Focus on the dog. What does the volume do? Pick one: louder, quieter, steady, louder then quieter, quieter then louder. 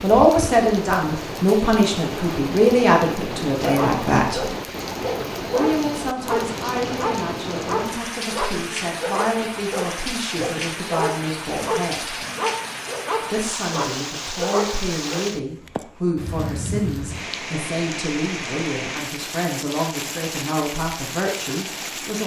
steady.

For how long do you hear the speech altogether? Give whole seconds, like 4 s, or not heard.
20 s.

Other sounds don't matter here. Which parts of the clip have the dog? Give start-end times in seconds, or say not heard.
3.6-15.2.